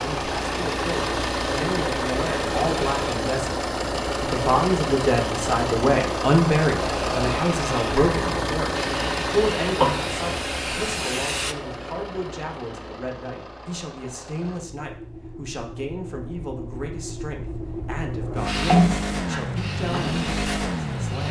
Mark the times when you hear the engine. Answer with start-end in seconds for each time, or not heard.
0.0-21.2.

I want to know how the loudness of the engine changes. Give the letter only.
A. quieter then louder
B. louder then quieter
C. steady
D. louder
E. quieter
A.